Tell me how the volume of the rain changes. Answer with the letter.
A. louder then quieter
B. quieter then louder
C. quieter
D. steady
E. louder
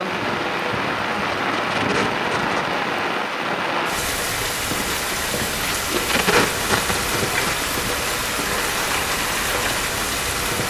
D.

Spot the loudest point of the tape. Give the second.
6 s.